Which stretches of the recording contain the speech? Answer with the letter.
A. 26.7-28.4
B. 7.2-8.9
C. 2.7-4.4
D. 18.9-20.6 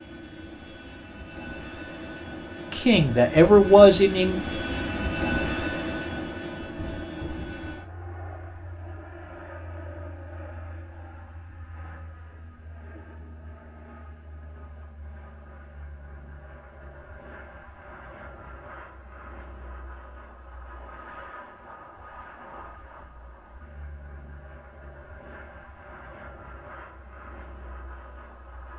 C.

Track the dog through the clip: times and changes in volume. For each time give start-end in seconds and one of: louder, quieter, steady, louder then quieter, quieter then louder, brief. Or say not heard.
not heard.